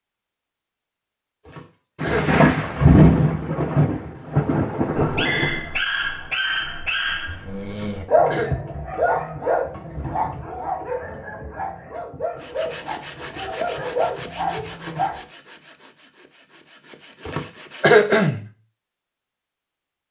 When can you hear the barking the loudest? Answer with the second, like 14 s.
8 s.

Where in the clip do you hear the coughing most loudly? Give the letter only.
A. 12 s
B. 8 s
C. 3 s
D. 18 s
D.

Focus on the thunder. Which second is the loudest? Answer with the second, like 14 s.
3 s.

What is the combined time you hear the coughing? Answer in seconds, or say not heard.
3 s.